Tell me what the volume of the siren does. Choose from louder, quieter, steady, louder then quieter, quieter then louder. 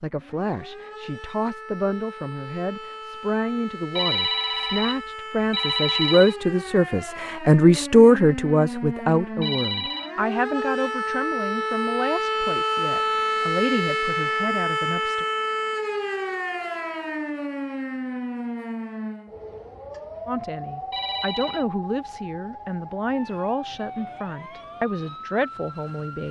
louder then quieter.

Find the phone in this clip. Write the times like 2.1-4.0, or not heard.
4.0-6.3, 9.4-10.1, 20.9-21.6.